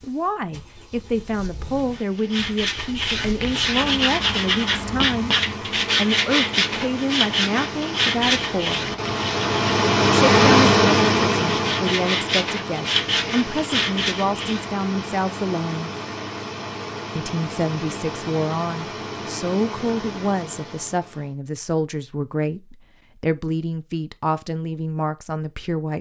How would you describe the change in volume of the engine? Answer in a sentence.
The volume of the engine goes up, then down.